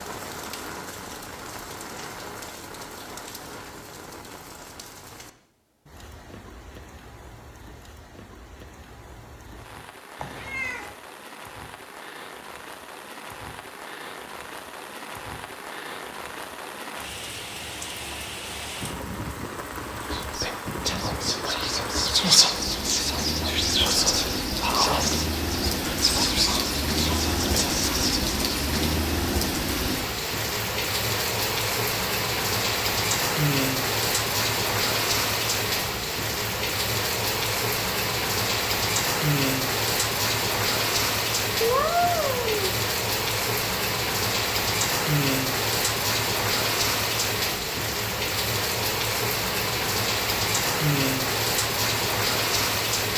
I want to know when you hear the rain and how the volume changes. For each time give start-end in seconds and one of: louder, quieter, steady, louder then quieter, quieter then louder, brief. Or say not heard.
0.0-53.1 louder.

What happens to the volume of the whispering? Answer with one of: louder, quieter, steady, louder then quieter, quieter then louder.
louder then quieter.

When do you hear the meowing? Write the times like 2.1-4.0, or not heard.
10.2-10.9, 41.6-42.8.